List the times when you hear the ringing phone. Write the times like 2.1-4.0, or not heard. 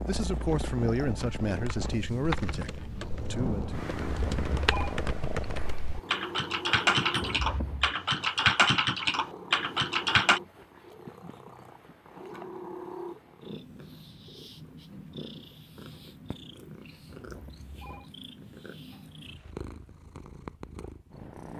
4.2-5.0, 7.2-8.0, 17.1-18.1.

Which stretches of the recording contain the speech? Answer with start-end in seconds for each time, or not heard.
0.0-3.9.